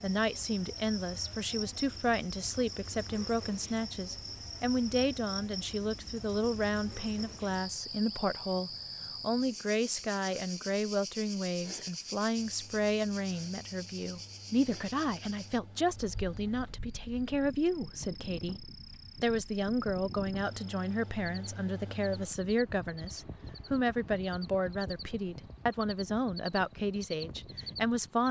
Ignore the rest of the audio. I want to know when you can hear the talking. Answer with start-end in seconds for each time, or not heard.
0.0-28.2.